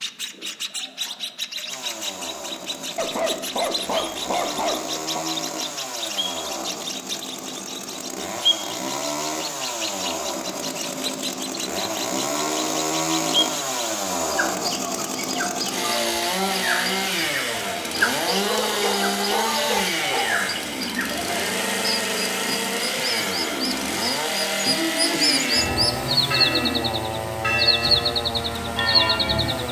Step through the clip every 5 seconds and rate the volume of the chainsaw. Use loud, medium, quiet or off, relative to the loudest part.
medium, medium, loud, loud, loud, loud.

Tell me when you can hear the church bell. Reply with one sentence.
You can hear the church bell from 25.4 to 29.6 s.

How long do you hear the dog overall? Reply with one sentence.
The dog can be heard for 5 seconds in total.